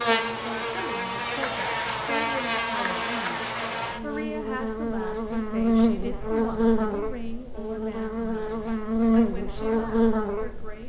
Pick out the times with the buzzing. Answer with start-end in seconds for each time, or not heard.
0.0-10.8.